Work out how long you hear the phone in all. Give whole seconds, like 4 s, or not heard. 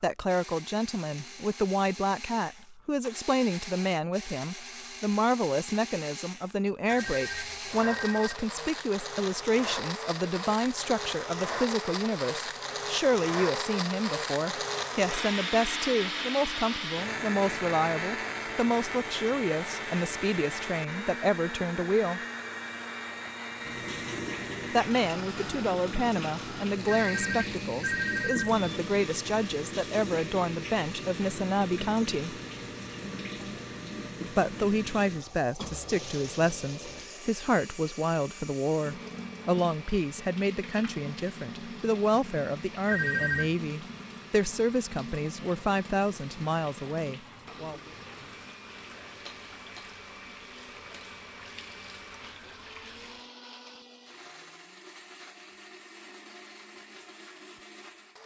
4 s.